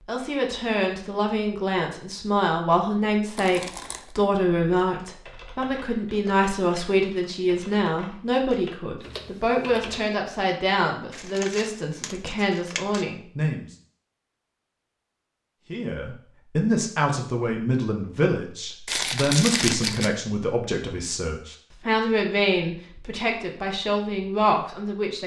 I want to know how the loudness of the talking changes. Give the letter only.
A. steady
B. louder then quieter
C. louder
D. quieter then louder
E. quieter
A.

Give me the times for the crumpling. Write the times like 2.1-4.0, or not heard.
3.4-4.2, 11.1-13.1, 18.9-20.1.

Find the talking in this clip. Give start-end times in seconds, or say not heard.
0.1-13.8, 15.7-25.2.